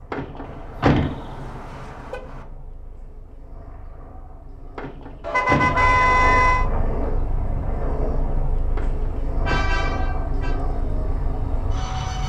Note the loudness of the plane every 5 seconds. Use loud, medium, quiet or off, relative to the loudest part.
quiet, loud, loud.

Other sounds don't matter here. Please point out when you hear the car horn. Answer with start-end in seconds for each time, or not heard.
0.4-2.5, 5.2-6.7, 9.4-10.6.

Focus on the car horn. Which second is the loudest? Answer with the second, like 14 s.
6 s.